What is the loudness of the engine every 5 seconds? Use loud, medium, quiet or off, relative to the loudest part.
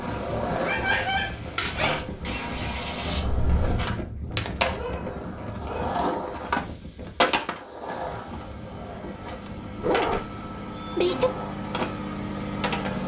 loud, medium, loud.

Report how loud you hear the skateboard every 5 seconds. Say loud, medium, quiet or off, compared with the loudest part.
loud, loud, medium.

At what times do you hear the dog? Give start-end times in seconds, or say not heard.
0.5-2.0, 4.8-6.0, 9.8-11.3.